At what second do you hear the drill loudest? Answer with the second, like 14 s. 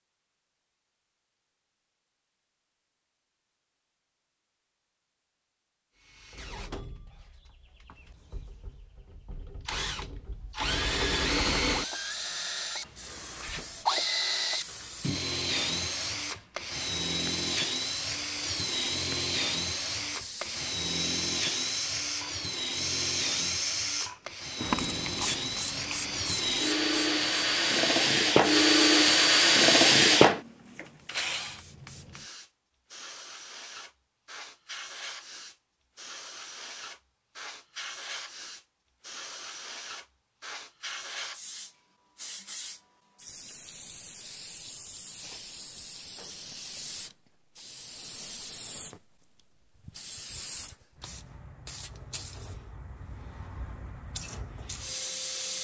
30 s.